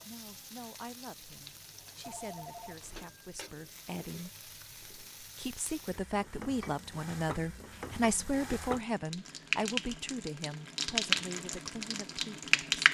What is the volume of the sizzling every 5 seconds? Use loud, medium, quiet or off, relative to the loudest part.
quiet, medium, loud.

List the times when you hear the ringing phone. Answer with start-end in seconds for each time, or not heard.
2.0-3.0.